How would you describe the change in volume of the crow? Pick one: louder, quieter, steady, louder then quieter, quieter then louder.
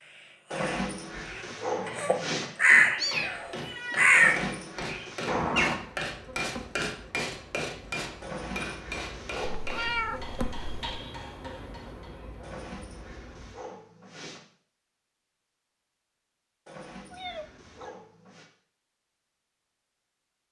louder then quieter.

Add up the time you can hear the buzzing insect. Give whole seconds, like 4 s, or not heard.
8 s.